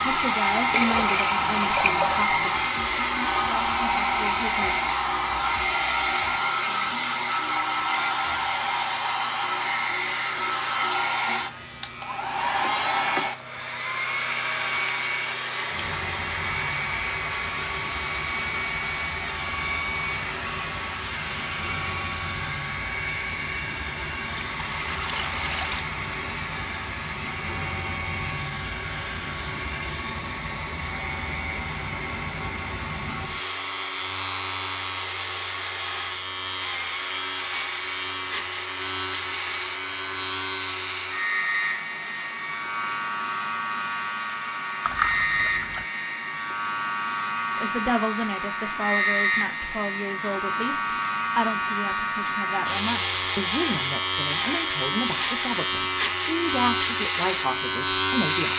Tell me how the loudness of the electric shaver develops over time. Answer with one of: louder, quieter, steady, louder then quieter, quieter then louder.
louder.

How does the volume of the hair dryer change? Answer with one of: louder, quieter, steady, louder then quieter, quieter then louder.
quieter.